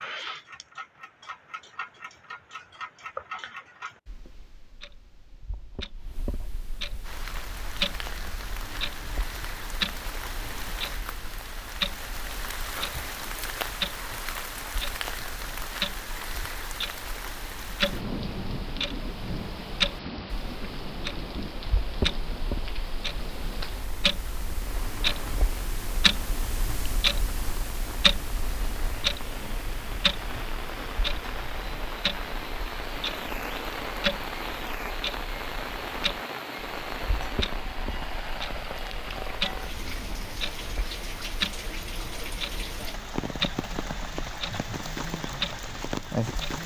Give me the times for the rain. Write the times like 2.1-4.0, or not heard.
7.0-46.6.